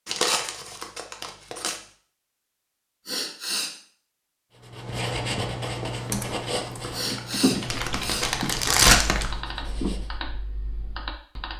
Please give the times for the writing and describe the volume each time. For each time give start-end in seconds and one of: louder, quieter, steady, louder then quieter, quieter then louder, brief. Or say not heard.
4.5-10.1 quieter.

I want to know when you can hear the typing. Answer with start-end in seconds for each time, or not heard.
5.9-11.5.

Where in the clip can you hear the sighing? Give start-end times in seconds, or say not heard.
3.0-3.8, 6.9-8.3.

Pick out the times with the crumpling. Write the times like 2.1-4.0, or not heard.
0.1-1.8, 7.7-9.3.